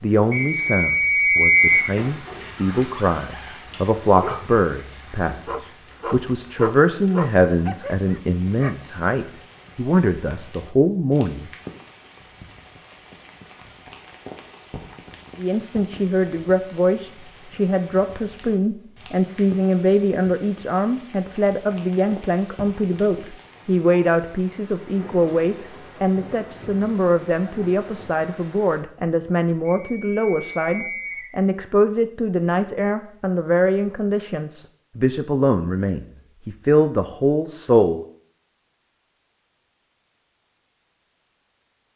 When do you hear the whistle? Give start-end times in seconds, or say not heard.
0.3-1.9, 29.6-31.3.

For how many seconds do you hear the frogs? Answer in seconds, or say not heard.
not heard.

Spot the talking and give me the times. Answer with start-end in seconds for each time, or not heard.
0.0-11.5, 15.3-38.0.